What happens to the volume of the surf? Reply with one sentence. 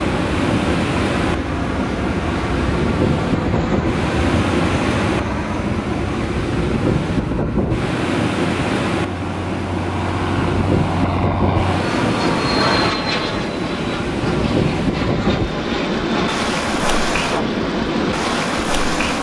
The volume of the surf stays about the same.